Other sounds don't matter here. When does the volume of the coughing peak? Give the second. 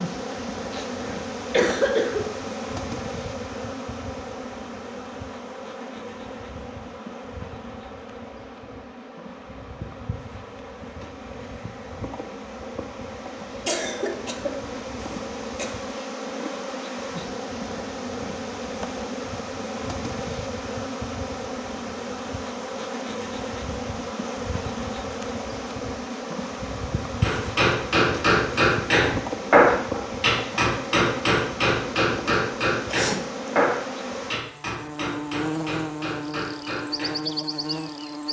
2 s.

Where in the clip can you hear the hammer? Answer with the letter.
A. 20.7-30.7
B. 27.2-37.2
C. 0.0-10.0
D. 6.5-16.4
B.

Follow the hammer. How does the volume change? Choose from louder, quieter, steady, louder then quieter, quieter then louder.
quieter.